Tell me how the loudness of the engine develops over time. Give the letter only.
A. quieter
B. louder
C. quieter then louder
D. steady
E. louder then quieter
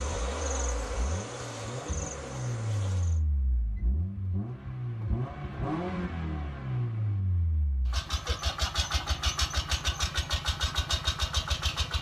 B.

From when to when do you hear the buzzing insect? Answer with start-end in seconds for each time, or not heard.
0.0-3.2.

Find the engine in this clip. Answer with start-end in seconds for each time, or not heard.
0.0-11.9.